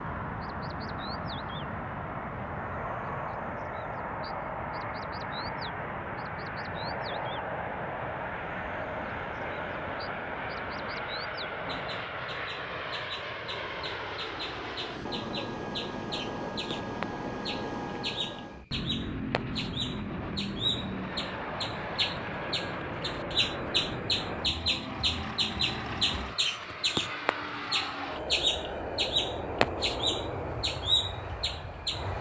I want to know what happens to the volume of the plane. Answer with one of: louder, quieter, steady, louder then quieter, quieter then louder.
steady.